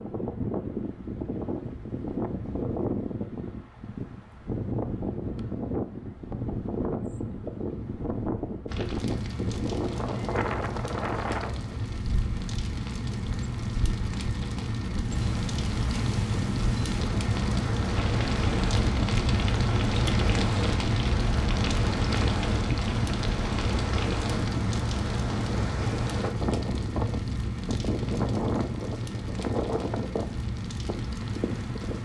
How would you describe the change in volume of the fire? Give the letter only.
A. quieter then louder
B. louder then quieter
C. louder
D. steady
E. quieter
B.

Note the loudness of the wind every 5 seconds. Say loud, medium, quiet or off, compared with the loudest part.
loud, loud, loud, loud, loud, loud, medium.